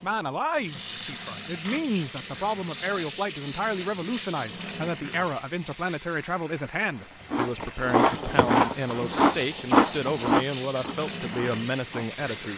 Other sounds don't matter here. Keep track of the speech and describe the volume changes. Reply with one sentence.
The loudness of the speech stays about the same.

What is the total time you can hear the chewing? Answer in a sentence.
The chewing can be heard for 5 seconds in total.